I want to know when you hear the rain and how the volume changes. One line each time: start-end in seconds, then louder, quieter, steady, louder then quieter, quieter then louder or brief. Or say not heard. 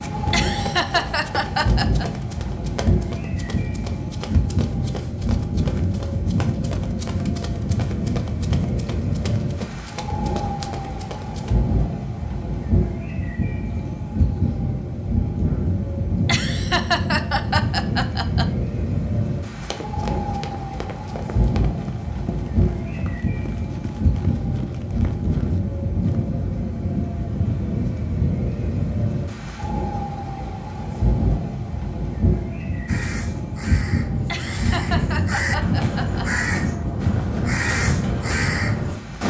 0.0-39.2 steady.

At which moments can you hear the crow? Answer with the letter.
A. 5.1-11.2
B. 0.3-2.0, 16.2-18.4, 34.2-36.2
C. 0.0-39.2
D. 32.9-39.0
D.